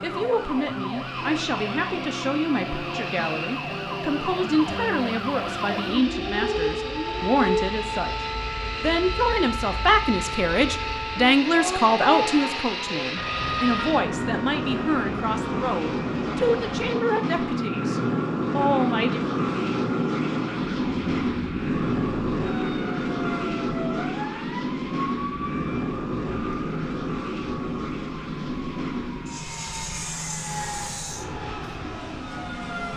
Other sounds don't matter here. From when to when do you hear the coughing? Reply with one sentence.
You can't hear the coughing here.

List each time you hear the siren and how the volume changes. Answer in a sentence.
The siren can be heard from 0.0 to 32.9 s, getting quieter.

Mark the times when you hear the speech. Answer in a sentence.
You can hear the speech from 0.0 to 19.2 s.